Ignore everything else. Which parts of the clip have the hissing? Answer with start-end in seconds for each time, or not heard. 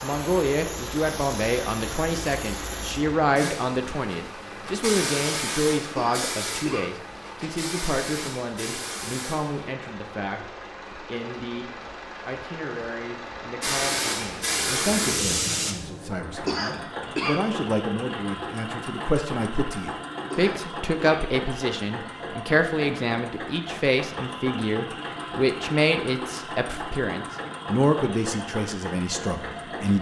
0.0-9.7, 13.6-15.8.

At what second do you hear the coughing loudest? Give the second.
17 s.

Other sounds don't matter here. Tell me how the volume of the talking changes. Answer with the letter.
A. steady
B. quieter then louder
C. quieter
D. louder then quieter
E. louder
B.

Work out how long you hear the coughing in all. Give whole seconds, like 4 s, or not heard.
3 s.